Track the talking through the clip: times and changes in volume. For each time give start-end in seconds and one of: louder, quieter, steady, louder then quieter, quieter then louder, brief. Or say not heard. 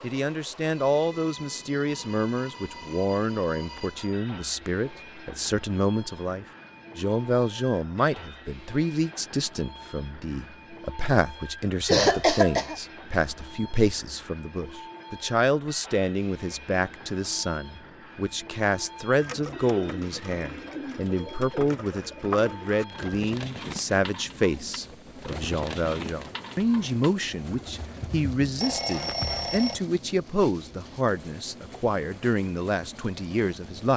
0.0-33.9 steady.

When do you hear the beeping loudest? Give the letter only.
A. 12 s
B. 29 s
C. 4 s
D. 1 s
B.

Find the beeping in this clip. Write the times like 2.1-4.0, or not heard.
1.9-4.2, 28.6-29.8.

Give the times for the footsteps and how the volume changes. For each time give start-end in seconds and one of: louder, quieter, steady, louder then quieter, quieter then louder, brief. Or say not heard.
not heard.